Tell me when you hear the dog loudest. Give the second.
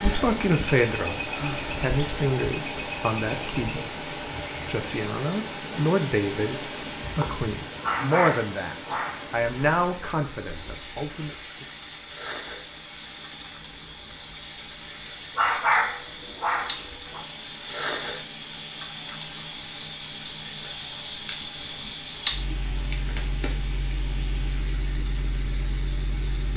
16 s.